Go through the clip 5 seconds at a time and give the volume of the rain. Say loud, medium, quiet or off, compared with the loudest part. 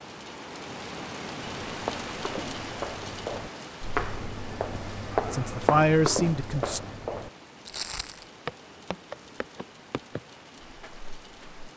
loud, medium, medium.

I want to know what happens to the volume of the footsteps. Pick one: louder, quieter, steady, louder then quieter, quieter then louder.
louder then quieter.